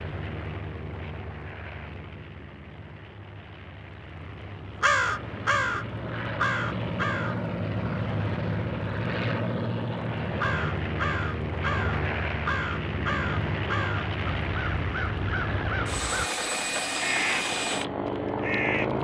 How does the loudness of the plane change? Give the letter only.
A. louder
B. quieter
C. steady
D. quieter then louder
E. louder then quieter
A.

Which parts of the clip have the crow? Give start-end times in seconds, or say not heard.
4.8-7.4, 10.3-18.9.